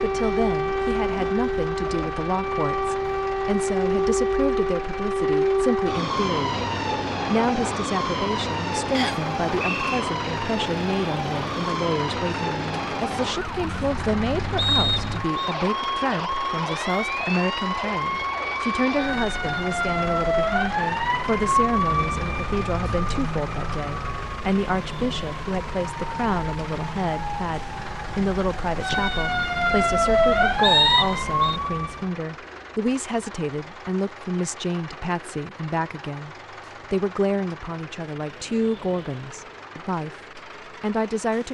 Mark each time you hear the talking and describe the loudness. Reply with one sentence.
The talking can be heard from 0.0 to 6.5 s, at a steady volume; and from 7.3 to 41.4 s, at a steady volume.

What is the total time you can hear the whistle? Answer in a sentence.
You can hear the whistle for 3 seconds altogether.